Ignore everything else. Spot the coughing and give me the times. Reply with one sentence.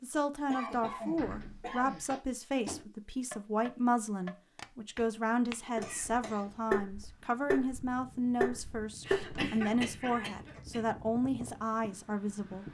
The coughing can be heard from 0.5 to 2.0 s, from 5.8 to 6.6 s and from 9.1 to 10.8 s.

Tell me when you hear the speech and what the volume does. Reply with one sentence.
You can hear the speech from 0.0 to 12.6 s, at a steady volume.